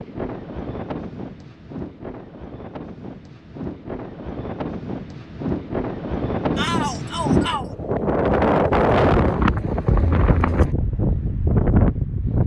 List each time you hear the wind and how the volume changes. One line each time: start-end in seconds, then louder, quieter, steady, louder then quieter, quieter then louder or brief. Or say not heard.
0.0-12.4 louder.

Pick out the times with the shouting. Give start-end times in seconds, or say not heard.
6.5-7.7.